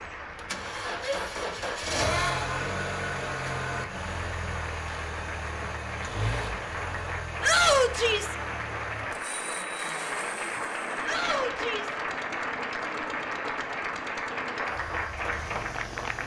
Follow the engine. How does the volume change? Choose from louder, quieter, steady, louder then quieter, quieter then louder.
quieter.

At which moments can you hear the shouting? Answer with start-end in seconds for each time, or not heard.
0.9-1.4, 7.4-8.3, 11.0-12.0.